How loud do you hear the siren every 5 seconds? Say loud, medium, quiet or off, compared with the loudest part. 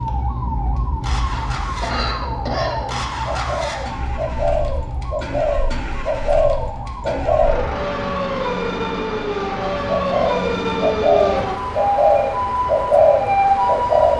medium, medium, loud.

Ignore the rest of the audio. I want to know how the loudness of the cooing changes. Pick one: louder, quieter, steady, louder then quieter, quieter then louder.
louder.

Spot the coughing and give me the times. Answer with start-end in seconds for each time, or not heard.
1.3-2.9.